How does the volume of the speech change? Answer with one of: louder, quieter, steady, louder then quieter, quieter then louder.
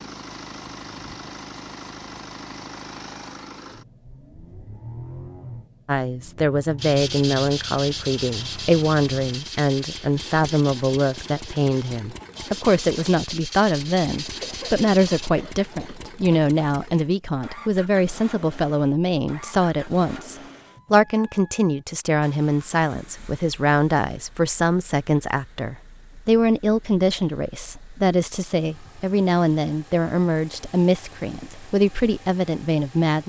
steady.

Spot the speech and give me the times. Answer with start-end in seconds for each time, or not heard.
5.8-33.2.